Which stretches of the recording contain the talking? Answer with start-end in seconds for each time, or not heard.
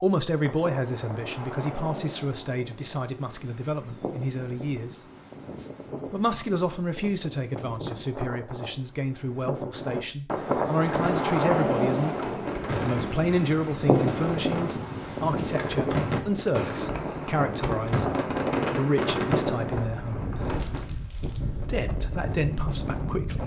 0.0-5.0, 6.1-18.1, 18.7-20.5, 21.6-23.4.